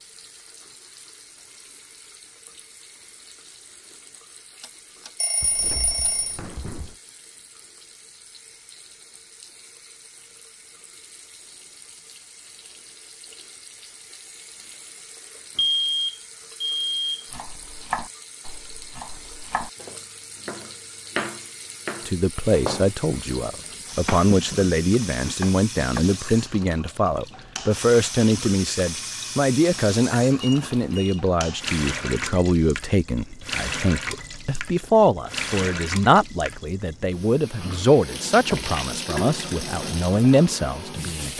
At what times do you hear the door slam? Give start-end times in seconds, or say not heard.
5.4-7.0.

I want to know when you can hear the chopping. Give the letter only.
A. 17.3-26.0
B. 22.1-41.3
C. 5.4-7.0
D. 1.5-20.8
A.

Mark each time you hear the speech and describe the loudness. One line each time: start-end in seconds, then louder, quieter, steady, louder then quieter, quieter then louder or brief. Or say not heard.
22.1-41.3 steady.